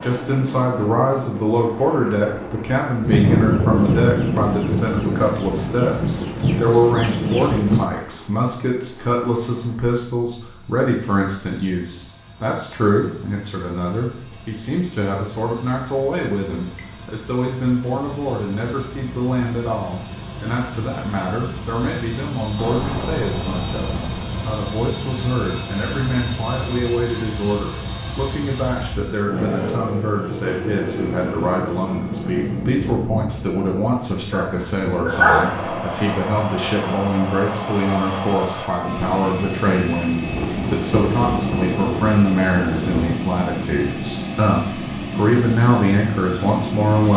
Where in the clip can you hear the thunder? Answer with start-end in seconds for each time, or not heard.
3.0-7.9, 22.6-24.4, 40.2-43.2.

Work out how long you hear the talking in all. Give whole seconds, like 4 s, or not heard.
47 s.